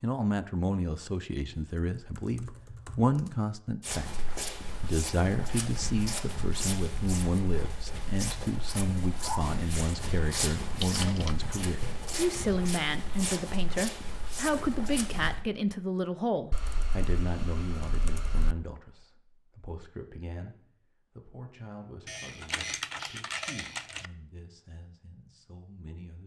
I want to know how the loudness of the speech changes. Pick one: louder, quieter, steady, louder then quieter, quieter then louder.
quieter.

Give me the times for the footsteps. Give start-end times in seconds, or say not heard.
3.8-15.4.